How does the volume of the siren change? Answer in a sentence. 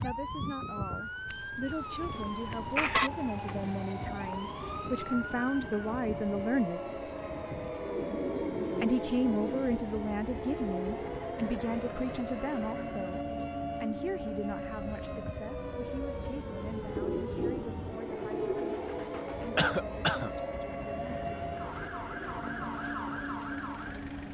The loudness of the siren stays about the same.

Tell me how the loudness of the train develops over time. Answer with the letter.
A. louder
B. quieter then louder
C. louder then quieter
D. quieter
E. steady
E.